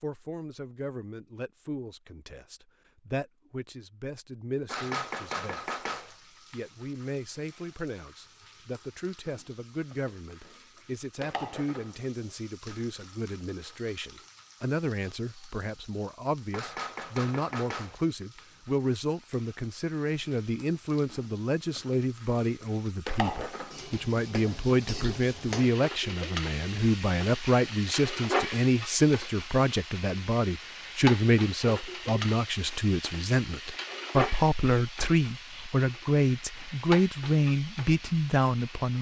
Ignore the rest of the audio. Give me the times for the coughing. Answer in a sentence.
The coughing can't be heard in this clip.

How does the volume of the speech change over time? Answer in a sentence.
The volume of the speech goes up.